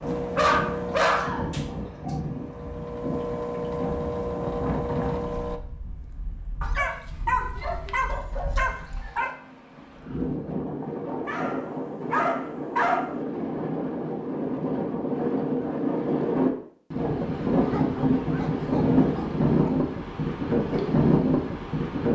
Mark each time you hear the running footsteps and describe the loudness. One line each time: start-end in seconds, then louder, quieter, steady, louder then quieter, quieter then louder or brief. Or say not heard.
not heard.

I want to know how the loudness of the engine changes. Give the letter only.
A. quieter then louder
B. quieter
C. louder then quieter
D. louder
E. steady
A.